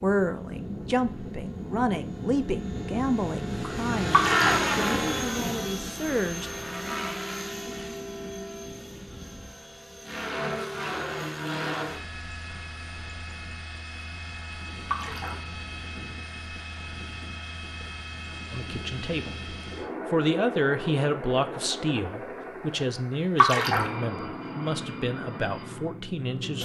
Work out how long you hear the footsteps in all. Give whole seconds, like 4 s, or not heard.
not heard.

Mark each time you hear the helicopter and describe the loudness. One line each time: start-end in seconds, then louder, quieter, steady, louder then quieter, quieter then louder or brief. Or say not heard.
0.0-26.6 quieter.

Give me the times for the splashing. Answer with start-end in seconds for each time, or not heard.
4.1-4.7, 14.8-15.4, 23.4-23.9.